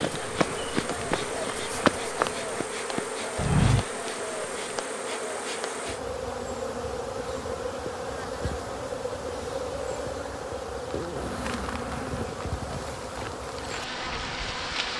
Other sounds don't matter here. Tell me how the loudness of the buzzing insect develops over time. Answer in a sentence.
The volume of the buzzing insect stays about the same.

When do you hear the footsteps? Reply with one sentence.
The footsteps can be heard from 0.0 to 4.8 s.